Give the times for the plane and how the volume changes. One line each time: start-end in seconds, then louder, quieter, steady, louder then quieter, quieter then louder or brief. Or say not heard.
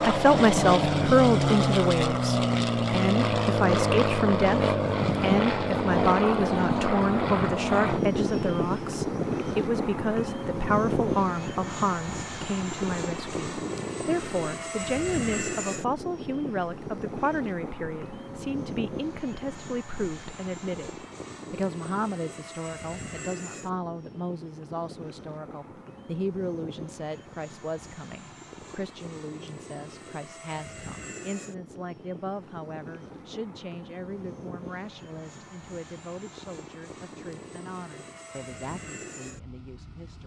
0.0-40.2 quieter.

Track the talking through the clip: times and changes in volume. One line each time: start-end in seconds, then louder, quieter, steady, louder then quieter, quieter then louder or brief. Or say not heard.
0.0-40.2 quieter.